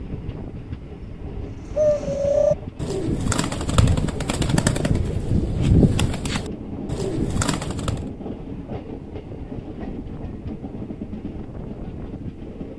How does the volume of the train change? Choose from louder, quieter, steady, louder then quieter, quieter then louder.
steady.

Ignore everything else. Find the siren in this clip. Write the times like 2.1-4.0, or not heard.
not heard.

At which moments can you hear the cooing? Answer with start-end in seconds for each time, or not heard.
1.8-8.1.